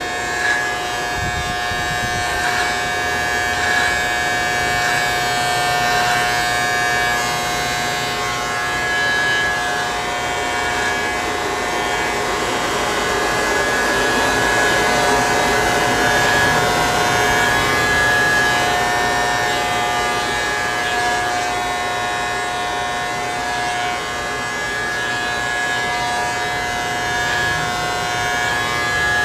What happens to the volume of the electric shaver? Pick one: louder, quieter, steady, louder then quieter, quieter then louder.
steady.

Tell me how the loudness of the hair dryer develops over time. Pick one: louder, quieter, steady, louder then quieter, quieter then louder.
louder then quieter.